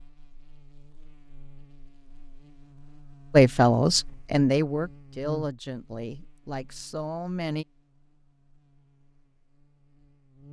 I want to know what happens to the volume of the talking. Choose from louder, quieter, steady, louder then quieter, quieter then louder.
quieter.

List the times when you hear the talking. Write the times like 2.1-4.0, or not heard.
3.3-7.7.